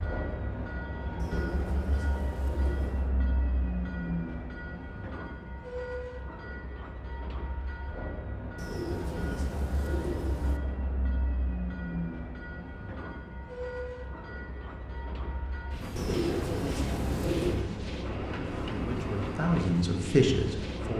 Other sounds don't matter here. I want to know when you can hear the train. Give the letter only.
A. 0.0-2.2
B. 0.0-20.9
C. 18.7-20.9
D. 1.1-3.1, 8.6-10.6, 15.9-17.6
B.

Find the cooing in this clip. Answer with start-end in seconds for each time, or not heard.
1.1-3.1, 8.6-10.6, 15.9-17.6.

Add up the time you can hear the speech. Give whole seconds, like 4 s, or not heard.
2 s.